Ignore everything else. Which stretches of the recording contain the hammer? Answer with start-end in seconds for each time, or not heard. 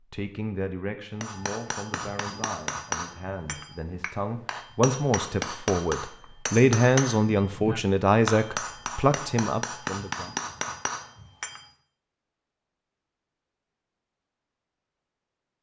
1.2-11.6.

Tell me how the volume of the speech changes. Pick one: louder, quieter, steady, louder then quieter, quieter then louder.
louder.